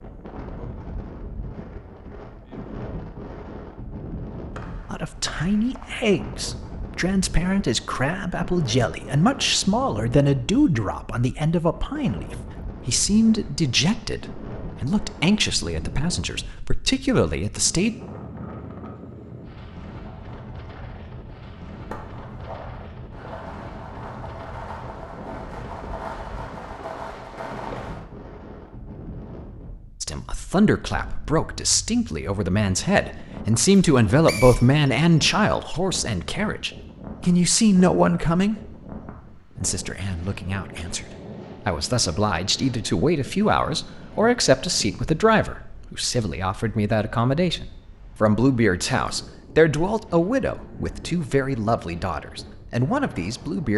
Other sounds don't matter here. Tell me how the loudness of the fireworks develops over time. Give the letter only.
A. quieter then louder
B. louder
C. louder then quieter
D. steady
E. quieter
B.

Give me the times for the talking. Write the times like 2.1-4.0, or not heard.
4.9-17.9, 30.0-38.7, 39.5-41.0, 41.6-53.7.